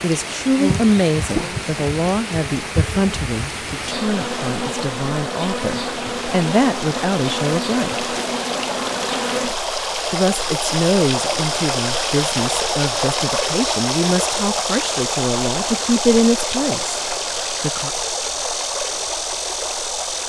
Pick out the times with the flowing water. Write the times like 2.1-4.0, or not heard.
0.0-20.2.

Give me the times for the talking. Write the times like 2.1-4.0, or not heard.
0.0-7.9, 10.1-17.9.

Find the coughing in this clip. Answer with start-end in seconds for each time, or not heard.
not heard.